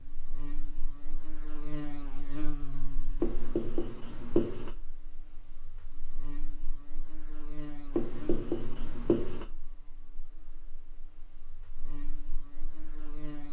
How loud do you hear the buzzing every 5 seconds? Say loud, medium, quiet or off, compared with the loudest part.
loud, medium, medium.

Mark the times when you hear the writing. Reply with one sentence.
The writing can be heard from 3.2 to 4.8 s and from 7.9 to 9.4 s.